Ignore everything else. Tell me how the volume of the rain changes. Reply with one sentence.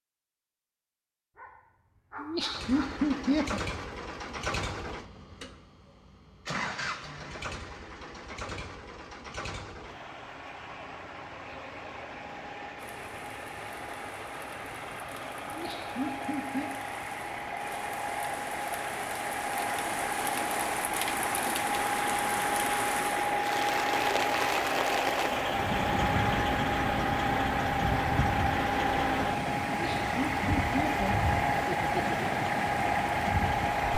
The loudness of the rain goes up.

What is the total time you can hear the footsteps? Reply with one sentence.
You can't hear the footsteps here.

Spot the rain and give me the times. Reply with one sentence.
The rain can be heard from 12.8 to 33.9 s.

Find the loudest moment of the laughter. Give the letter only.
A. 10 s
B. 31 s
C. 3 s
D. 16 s
C.